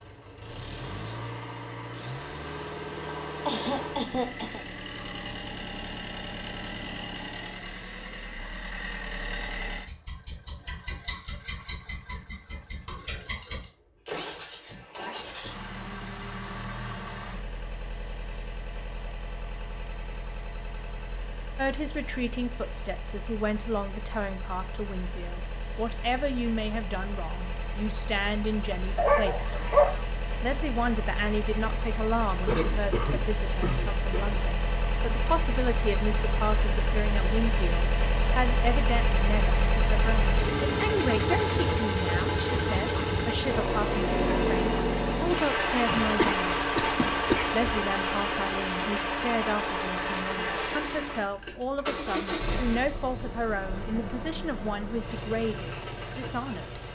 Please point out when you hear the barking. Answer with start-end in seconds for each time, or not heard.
28.9-29.9.